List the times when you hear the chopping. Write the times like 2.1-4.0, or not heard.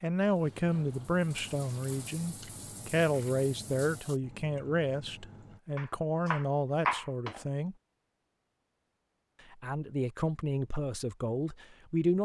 5.8-7.5.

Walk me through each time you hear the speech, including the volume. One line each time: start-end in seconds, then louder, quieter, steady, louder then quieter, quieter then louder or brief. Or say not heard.
0.0-7.8 steady
9.5-12.1 brief.